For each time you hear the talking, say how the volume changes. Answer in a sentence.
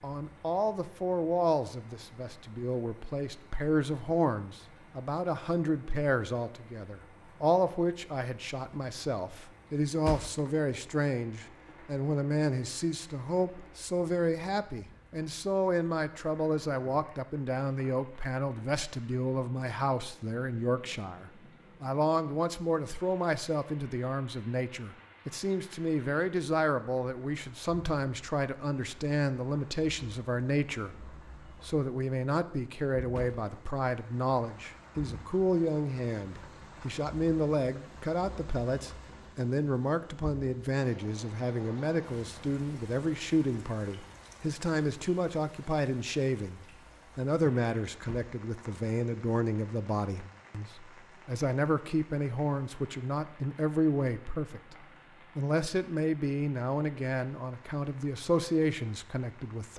You can hear the talking from 0.0 to 59.7 s, at a steady volume.